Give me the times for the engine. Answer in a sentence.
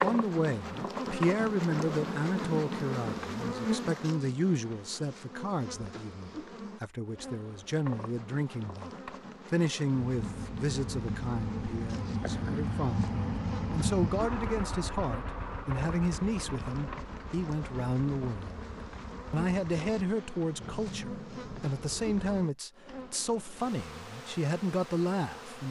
The engine can be heard from 10.0 to 22.4 s.